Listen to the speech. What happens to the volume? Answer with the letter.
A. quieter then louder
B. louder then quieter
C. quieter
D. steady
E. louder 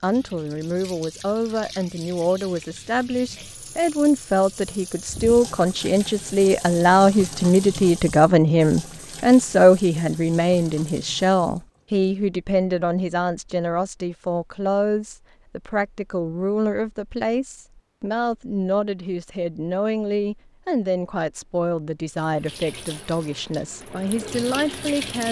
B.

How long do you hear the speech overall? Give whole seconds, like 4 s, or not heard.
25 s.